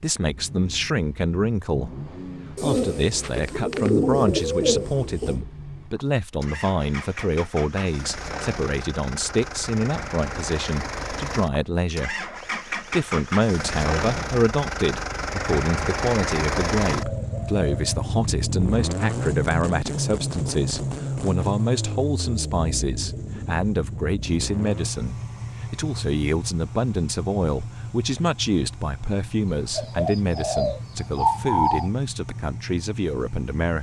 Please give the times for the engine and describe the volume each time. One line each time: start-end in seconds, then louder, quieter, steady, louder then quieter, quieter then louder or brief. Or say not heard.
0.2-33.7 louder then quieter.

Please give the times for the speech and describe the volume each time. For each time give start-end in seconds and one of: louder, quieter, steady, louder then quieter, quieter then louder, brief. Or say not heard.
0.0-33.7 steady.